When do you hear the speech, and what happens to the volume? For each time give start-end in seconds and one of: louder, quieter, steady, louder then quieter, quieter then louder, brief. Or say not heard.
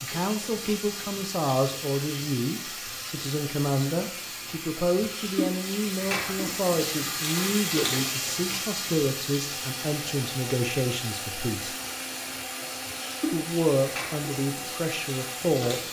0.0-11.8 steady
13.3-15.8 brief.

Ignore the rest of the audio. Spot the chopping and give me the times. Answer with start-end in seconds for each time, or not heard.
not heard.